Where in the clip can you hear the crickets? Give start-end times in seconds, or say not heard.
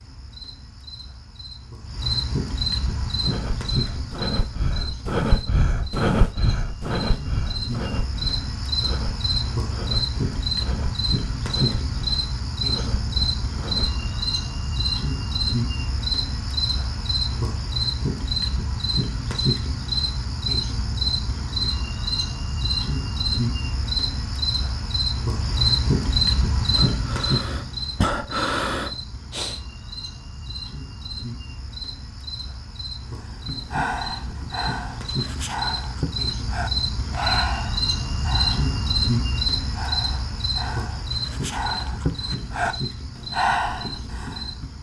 0.0-44.7.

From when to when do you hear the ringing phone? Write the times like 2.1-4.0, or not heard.
not heard.